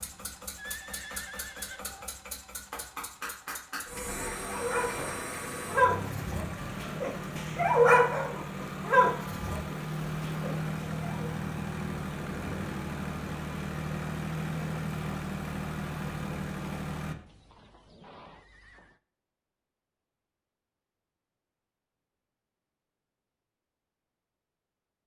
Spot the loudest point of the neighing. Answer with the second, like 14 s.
1 s.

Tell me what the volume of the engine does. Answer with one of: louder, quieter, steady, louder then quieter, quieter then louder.
louder.